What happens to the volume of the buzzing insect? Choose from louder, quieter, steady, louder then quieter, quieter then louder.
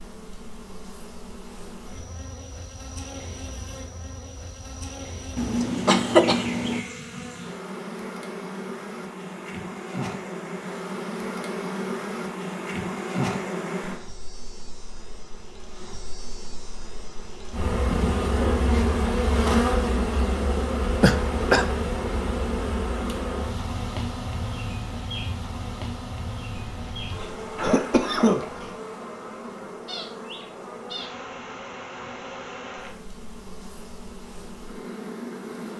louder then quieter.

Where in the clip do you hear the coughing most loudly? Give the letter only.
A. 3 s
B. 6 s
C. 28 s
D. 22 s
B.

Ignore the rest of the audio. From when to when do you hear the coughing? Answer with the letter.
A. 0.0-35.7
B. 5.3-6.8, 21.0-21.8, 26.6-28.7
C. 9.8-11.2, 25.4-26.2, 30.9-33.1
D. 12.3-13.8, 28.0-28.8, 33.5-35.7
B.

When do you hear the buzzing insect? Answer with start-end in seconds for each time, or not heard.
0.0-35.7.